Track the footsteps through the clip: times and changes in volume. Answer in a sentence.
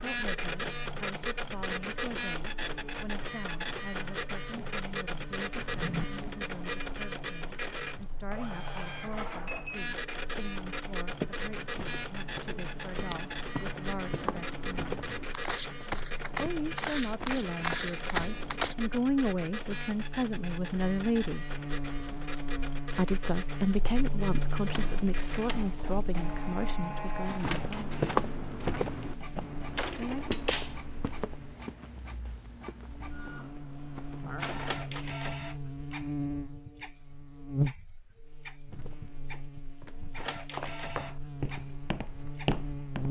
You can hear the footsteps from 11.1 to 18.8 s, getting louder; from 27.4 to 35.1 s, getting quieter; and from 38.7 to 43.0 s, getting louder.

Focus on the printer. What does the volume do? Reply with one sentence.
The volume of the printer goes down.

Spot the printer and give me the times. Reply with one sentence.
The printer can be heard from 0.0 to 43.0 s.